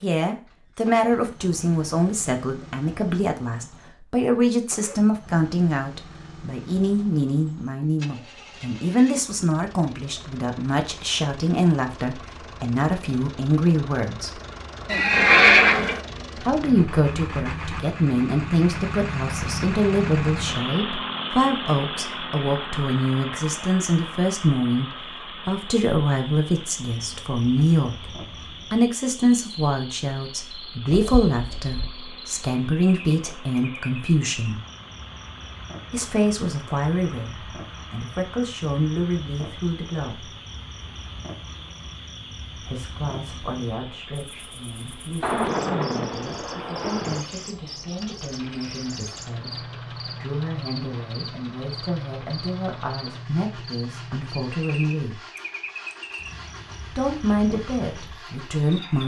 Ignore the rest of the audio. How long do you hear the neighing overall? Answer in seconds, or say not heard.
2 s.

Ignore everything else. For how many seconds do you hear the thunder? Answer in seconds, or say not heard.
2 s.